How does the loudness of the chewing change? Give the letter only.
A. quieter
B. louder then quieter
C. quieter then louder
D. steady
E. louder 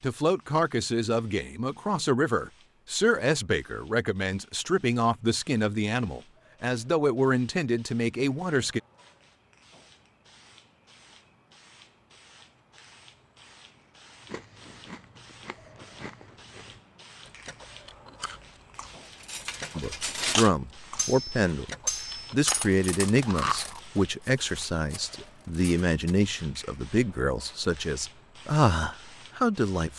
E.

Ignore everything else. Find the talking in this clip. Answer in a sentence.
You can hear the talking from 0.0 to 8.8 s, from 19.8 to 21.7 s and from 22.3 to 29.9 s.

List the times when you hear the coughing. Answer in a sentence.
The coughing can't be heard in this clip.